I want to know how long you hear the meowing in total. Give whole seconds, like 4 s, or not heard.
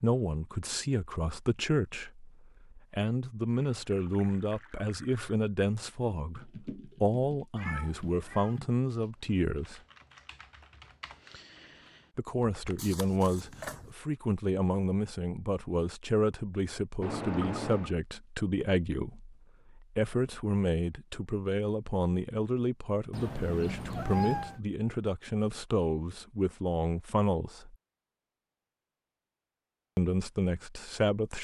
4 s.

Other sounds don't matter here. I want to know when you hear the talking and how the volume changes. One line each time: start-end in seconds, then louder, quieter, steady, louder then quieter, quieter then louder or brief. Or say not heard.
0.0-9.8 steady
12.2-27.8 steady
29.9-31.3 brief.